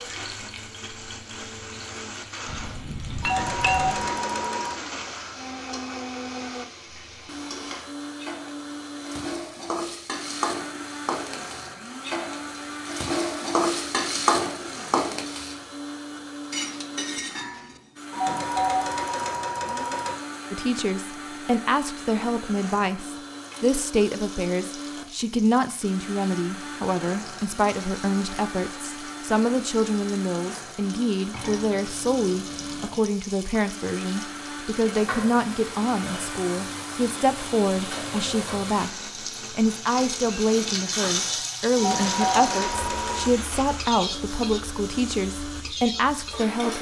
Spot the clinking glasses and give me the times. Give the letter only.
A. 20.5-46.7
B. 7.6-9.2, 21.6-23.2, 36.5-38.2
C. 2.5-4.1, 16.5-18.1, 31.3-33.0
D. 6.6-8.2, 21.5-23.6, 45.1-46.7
C.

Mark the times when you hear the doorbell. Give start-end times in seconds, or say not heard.
3.2-4.8, 18.1-20.1, 41.8-43.4.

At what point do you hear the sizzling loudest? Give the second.
14 s.